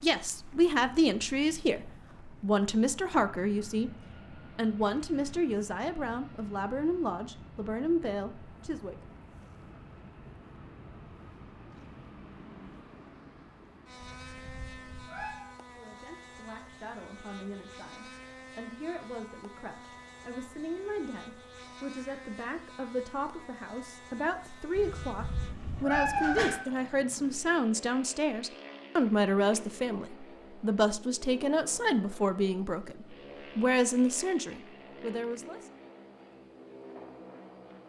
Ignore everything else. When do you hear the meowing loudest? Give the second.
26 s.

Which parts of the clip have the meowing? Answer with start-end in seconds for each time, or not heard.
14.0-15.5, 24.8-26.6.